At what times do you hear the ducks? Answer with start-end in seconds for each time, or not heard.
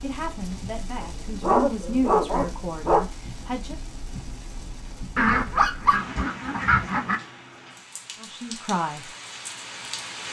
5.2-7.2.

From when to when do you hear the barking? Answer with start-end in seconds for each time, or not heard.
1.0-3.0, 5.5-6.0.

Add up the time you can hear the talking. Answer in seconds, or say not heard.
5 s.